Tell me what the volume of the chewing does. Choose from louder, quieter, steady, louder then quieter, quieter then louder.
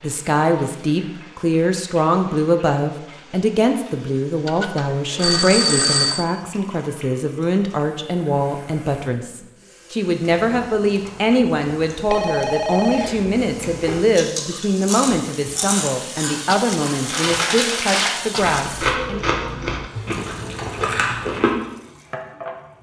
louder.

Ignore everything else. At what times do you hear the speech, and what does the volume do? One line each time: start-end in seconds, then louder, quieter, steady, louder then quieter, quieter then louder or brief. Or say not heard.
0.0-19.2 steady.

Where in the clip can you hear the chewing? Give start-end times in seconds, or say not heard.
10.4-21.6.